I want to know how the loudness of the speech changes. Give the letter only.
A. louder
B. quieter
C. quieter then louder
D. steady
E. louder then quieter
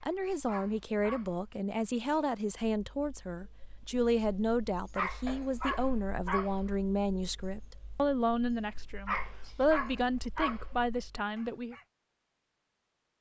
D.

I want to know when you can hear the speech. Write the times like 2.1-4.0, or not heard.
0.0-11.8.